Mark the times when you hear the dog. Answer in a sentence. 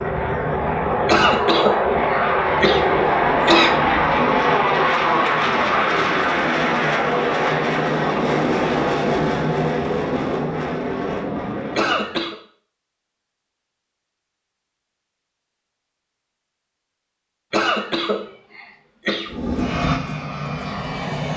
You can't hear the dog here.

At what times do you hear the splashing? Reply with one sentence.
The splashing can't be heard in this clip.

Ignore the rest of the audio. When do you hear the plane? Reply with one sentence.
You can hear the plane from 0.0 to 12.2 s and from 19.3 to 21.3 s.